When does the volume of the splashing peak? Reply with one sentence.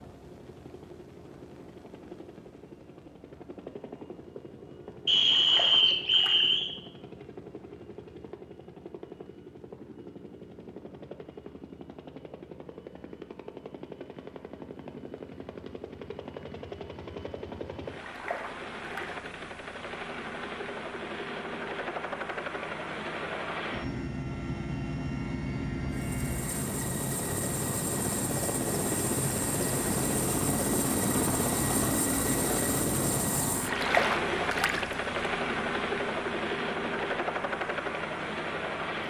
The loudest moment of the splashing is at 34 seconds.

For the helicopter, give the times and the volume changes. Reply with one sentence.
You can hear the helicopter from 0.0 to 39.0 s, getting louder.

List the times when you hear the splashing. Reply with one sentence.
The splashing can be heard from 5.2 to 6.5 s, from 18.0 to 19.2 s and from 33.6 to 34.9 s.